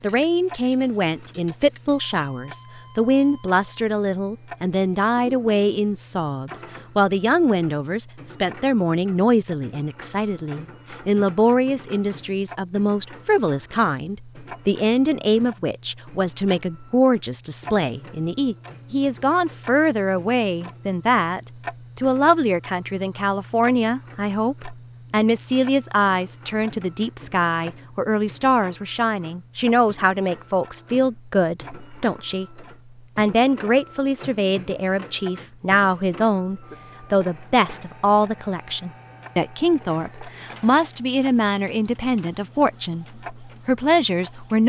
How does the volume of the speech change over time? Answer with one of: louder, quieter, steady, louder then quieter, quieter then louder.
steady.